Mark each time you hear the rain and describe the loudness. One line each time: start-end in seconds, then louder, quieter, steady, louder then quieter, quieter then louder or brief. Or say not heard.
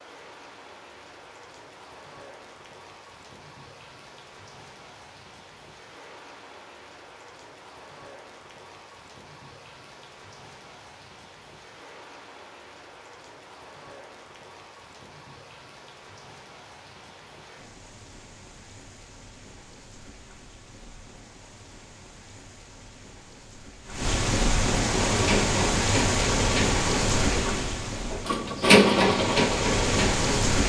0.0-30.6 louder.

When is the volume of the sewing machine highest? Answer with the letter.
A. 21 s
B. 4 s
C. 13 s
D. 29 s
D.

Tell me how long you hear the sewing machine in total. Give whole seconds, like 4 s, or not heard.
6 s.